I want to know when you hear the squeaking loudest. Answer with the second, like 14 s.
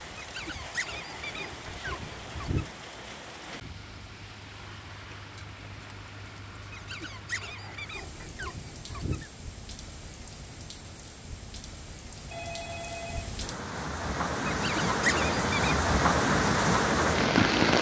15 s.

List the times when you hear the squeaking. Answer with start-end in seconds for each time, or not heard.
0.1-2.7, 6.7-9.3, 14.4-15.8.